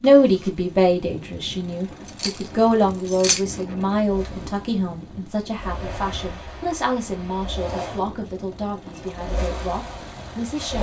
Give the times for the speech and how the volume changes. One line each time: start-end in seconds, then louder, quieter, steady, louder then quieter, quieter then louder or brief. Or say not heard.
0.0-10.7 quieter.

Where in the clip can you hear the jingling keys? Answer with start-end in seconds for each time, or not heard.
2.0-3.4.